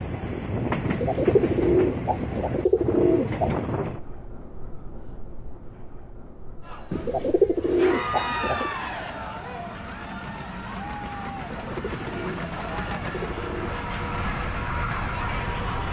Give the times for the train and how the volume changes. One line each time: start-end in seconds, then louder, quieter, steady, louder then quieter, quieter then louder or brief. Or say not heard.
0.0-15.8 quieter then louder.